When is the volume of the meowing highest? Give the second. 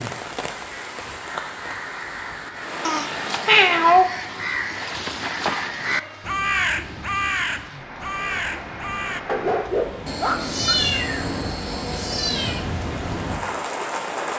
4 s.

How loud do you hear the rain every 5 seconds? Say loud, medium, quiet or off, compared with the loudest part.
loud, medium, loud.